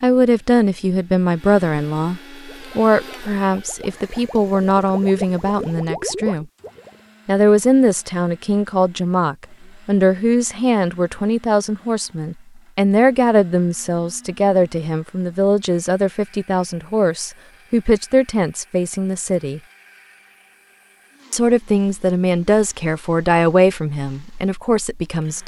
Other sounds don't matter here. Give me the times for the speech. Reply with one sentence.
The speech can be heard from 0.0 to 6.5 s, from 7.2 to 19.6 s and from 21.3 to 25.4 s.